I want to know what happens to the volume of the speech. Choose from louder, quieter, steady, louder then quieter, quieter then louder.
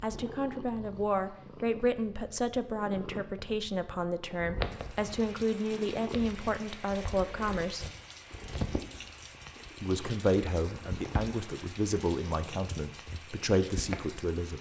steady.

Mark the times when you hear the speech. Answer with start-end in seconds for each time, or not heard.
0.0-7.8, 9.8-14.5.